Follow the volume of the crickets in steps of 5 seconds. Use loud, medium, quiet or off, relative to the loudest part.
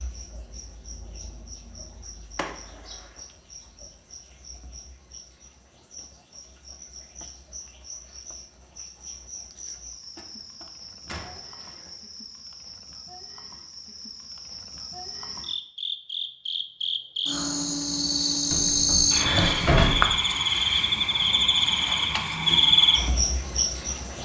quiet, quiet, quiet, loud, loud.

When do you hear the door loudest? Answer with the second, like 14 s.
20 s.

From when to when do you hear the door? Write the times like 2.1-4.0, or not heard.
2.4-3.0, 10.2-11.9, 18.5-20.1.